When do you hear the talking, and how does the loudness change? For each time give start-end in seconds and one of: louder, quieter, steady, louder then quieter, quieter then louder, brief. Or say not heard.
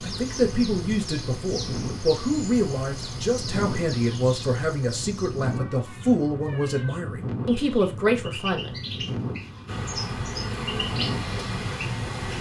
0.0-8.8 steady.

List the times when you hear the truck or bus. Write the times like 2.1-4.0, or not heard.
9.7-12.3.